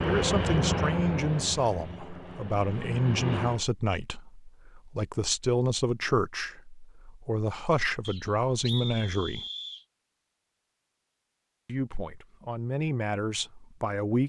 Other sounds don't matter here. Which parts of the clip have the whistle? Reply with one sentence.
You can hear the whistle from 8.0 to 9.8 s.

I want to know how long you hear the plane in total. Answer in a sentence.
You can hear the plane for 4 seconds altogether.